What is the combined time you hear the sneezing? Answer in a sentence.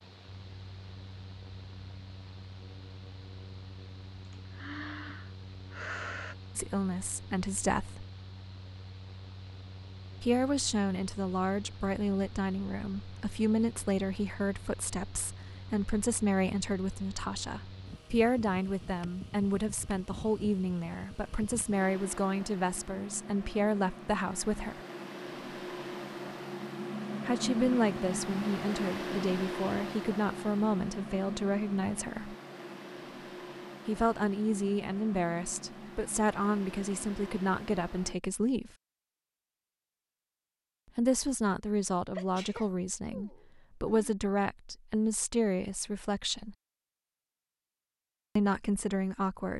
You can hear the sneezing for 4 seconds altogether.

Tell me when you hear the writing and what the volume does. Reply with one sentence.
The writing can't be heard in this clip.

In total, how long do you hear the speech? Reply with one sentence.
The speech can be heard for 33 seconds in total.